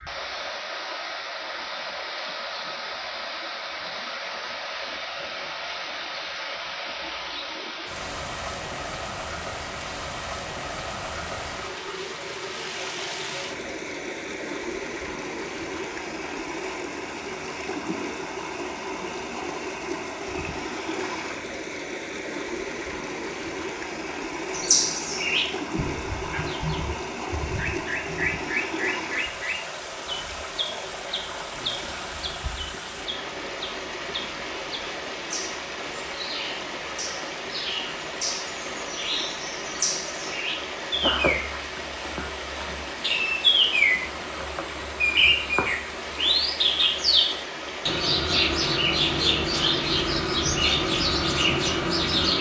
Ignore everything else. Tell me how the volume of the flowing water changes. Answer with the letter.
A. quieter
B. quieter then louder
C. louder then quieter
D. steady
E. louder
D.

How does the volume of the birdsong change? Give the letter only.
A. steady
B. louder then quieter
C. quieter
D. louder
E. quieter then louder
E.